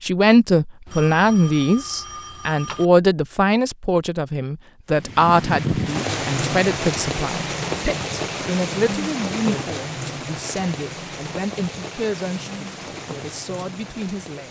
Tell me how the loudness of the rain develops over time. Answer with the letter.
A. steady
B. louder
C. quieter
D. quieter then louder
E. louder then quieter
C.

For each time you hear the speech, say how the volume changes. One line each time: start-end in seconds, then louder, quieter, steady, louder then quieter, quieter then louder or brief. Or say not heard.
0.1-14.4 quieter.